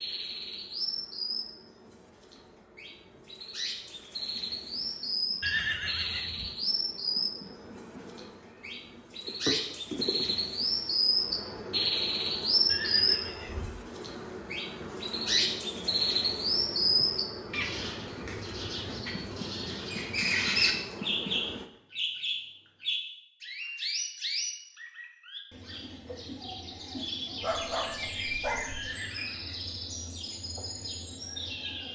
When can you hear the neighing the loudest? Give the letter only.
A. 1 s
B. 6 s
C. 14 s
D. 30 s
B.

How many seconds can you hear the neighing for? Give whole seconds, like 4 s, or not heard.
3 s.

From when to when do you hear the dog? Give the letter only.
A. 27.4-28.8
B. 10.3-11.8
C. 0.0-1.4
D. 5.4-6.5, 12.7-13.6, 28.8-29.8
A.